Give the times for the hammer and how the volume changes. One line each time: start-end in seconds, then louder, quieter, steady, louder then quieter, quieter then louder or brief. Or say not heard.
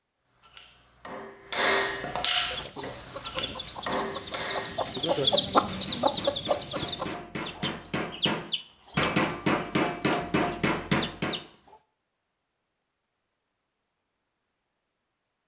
0.3-11.4 quieter then louder.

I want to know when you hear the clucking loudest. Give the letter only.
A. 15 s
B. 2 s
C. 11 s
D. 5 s
D.